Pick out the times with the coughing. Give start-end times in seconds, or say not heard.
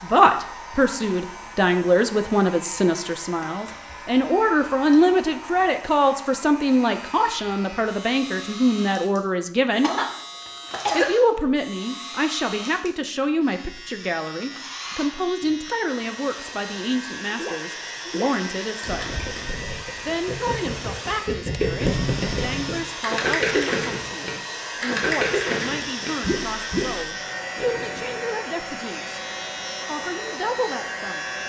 9.8-11.2.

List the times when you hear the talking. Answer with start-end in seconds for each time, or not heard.
0.0-9.9, 10.9-19.2, 20.1-29.2, 29.9-31.2.